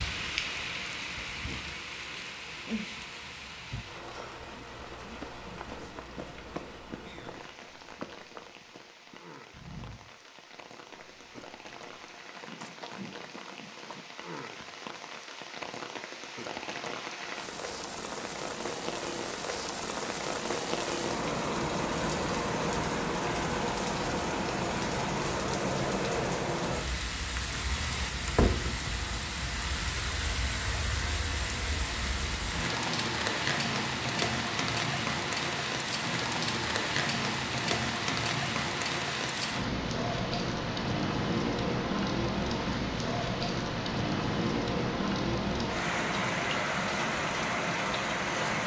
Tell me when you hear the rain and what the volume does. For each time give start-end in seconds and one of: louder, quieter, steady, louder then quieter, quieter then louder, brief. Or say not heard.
0.0-48.6 louder.